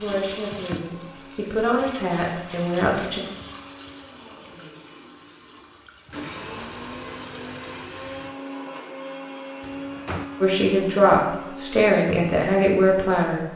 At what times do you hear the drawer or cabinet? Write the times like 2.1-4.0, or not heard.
9.6-10.3.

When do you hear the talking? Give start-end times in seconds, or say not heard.
0.0-3.2, 10.4-13.4.